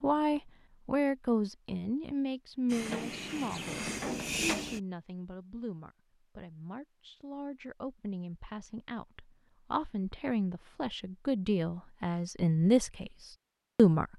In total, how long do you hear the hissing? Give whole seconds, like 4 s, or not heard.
2 s.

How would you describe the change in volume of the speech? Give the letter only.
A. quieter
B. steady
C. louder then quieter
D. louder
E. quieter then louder
E.